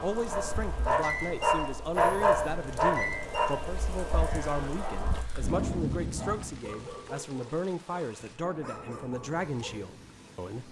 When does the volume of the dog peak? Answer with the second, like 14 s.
2 s.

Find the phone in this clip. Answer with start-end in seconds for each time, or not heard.
not heard.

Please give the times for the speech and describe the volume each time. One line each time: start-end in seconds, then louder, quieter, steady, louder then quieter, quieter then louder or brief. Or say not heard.
0.0-10.6 steady.